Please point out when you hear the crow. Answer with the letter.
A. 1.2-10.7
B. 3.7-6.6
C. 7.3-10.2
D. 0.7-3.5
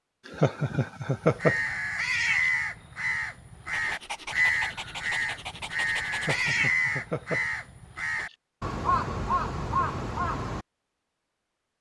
A.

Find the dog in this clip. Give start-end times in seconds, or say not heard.
3.7-6.6.